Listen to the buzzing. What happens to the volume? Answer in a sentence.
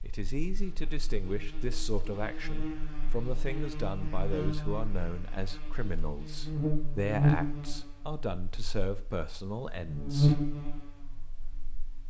The volume of the buzzing goes up.